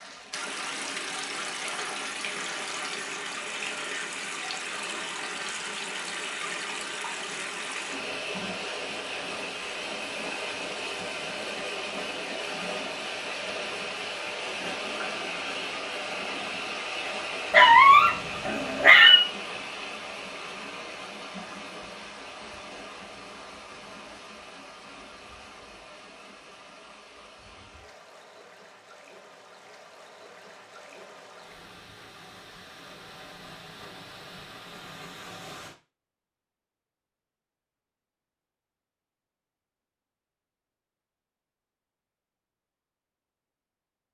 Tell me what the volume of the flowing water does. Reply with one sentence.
The loudness of the flowing water goes down.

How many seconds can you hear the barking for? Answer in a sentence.
The barking can be heard for 2 seconds in total.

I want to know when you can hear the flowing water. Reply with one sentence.
You can hear the flowing water from 0.0 to 35.8 s.